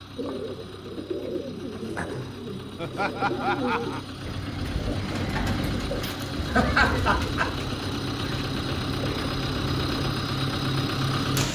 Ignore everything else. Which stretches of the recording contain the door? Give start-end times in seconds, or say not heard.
not heard.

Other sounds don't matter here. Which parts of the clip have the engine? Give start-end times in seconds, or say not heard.
0.0-11.4.